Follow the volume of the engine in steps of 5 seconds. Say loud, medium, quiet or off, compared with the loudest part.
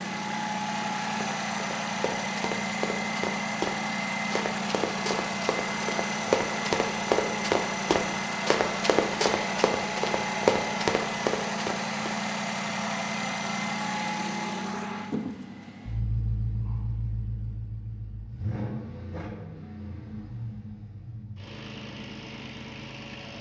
loud, loud, loud, medium, medium.